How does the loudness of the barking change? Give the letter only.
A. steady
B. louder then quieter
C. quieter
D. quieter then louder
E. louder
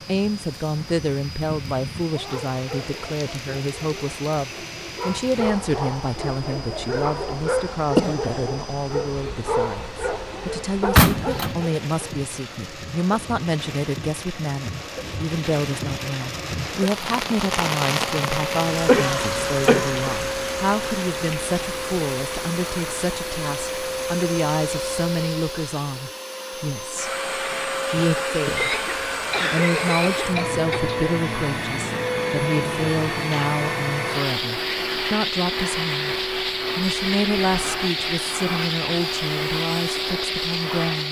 E.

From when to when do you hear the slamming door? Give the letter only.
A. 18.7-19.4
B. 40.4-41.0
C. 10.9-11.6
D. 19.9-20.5
C.